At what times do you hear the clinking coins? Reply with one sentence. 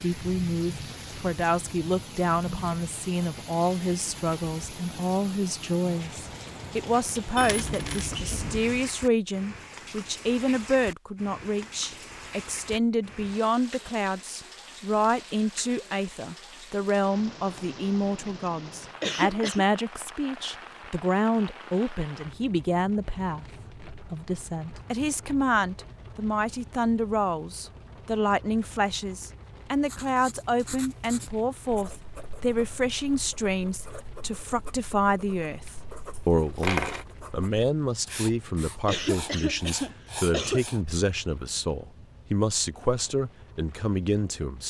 The clinking coins can be heard from 7.3 to 8.9 s and from 36.1 to 37.0 s.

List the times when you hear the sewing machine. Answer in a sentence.
The sewing machine can't be heard in this clip.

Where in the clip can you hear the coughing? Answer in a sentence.
You can hear the coughing from 19.0 to 19.6 s and from 38.9 to 40.6 s.